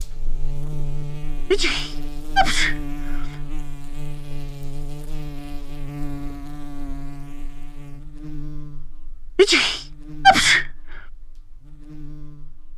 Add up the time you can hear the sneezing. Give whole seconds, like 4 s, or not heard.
3 s.